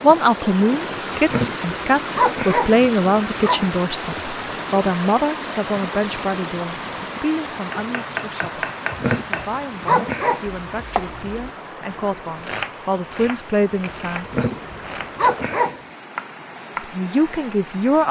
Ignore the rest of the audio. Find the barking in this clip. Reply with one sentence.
You can hear the barking from 1.2 to 3.6 s, from 8.9 to 10.4 s and from 14.2 to 15.8 s.